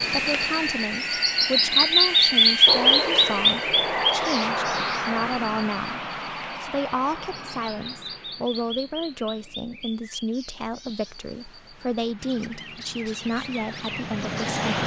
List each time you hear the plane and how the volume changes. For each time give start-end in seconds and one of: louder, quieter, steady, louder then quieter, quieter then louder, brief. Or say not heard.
0.0-14.8 quieter then louder.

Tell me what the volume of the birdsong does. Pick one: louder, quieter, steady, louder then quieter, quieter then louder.
quieter.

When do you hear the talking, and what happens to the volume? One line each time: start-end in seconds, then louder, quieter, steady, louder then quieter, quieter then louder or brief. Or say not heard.
0.0-14.8 steady.